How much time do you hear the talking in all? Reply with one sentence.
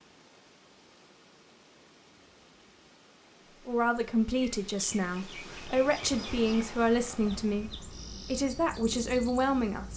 The talking can be heard for 6 seconds in total.